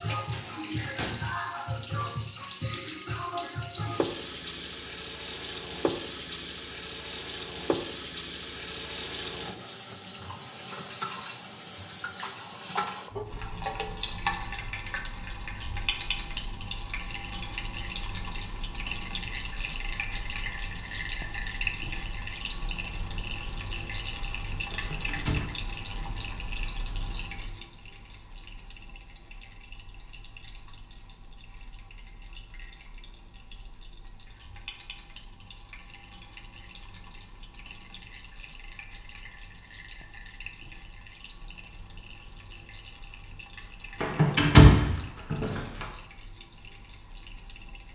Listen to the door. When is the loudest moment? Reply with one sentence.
The volume of the door peaks at 45 seconds.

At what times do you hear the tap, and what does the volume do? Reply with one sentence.
You can hear the tap from 0.0 to 47.8 s, getting quieter.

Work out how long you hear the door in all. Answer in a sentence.
You can hear the door for 4 seconds altogether.